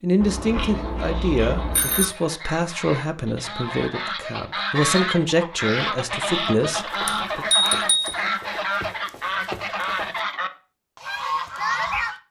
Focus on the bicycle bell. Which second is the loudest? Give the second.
8 s.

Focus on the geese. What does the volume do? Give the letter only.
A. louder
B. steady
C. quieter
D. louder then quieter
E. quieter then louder
A.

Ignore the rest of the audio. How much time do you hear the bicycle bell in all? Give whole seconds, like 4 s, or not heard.
3 s.